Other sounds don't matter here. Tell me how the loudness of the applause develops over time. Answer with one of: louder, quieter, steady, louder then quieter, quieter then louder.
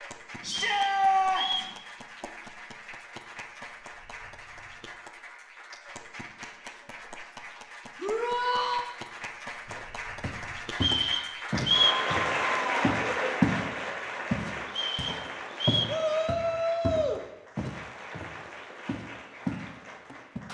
louder then quieter.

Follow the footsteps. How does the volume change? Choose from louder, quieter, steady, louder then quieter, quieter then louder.
louder then quieter.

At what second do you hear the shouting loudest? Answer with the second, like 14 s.
1 s.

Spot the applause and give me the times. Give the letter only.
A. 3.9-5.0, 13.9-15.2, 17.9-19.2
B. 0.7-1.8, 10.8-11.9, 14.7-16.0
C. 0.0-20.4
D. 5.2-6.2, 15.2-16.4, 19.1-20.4
C.